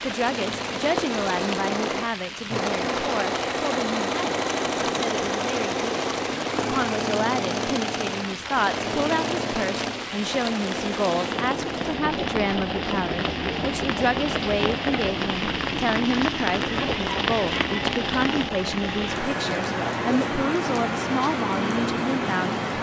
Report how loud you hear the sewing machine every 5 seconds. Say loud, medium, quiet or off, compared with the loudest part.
loud, loud, medium, medium, off.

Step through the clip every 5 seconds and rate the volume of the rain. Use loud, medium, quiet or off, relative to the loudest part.
medium, medium, loud, loud, loud.